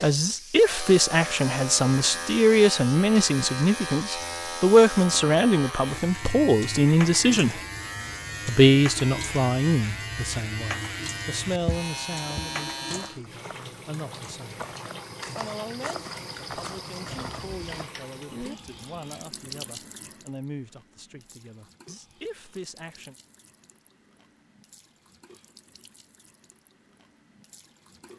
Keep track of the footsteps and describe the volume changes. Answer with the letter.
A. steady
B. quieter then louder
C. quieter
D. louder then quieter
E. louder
B.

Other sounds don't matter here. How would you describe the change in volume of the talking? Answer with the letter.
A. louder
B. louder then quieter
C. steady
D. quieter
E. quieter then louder
D.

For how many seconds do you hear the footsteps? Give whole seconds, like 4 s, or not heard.
6 s.